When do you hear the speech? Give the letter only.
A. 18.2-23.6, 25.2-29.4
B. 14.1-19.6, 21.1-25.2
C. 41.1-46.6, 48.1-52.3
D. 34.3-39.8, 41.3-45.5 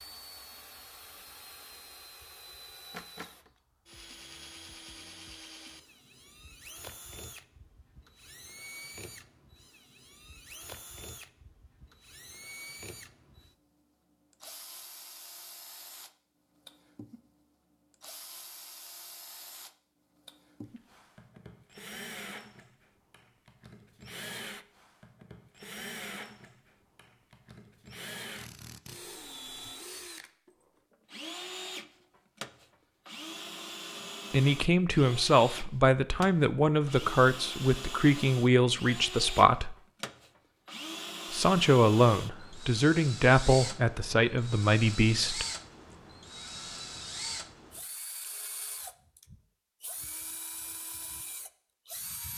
D.